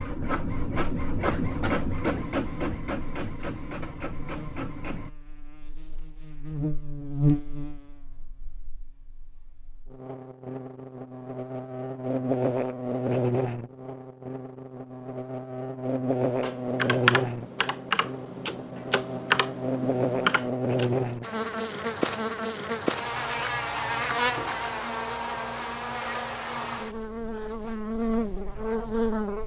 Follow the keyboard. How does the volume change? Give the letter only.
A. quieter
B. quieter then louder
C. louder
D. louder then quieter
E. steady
B.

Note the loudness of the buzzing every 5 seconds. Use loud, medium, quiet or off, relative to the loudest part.
quiet, medium, loud, loud, loud, loud.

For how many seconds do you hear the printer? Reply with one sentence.
The printer can be heard for 5 seconds in total.